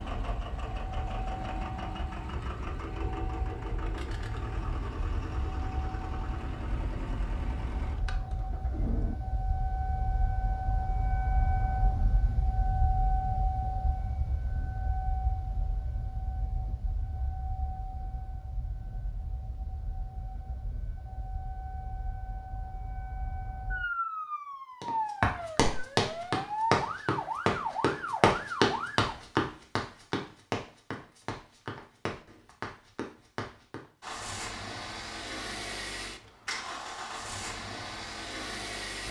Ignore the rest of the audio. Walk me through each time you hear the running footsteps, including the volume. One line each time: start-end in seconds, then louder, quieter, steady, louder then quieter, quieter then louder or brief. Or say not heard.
24.8-33.9 quieter.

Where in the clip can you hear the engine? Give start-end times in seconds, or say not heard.
0.0-9.2, 34.0-39.0.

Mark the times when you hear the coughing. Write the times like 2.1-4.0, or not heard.
not heard.